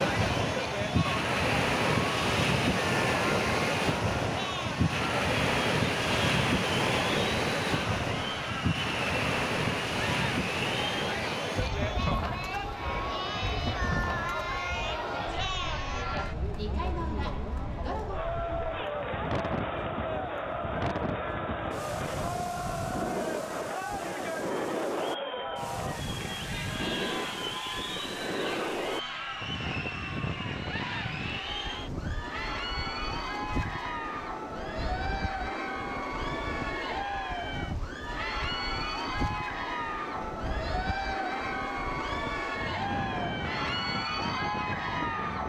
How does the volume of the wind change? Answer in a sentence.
The volume of the wind goes down.